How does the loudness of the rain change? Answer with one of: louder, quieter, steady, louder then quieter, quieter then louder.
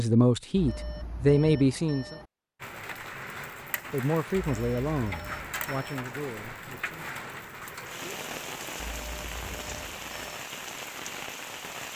steady.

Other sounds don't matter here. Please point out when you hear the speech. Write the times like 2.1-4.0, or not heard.
0.0-2.1, 3.9-7.3.